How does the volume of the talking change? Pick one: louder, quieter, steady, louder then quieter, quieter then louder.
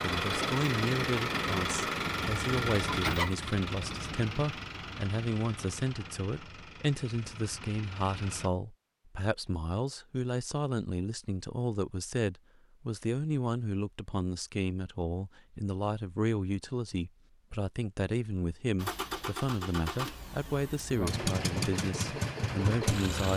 steady.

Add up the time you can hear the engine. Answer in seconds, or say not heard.
13 s.